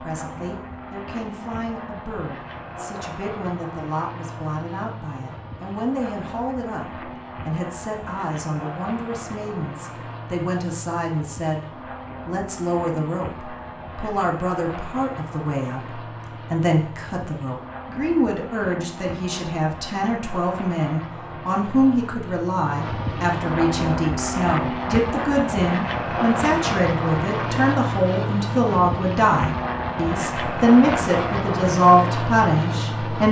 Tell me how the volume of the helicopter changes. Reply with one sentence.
The loudness of the helicopter goes up.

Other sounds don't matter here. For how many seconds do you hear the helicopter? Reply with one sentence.
You can hear the helicopter for 33 seconds altogether.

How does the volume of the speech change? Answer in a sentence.
The loudness of the speech goes up.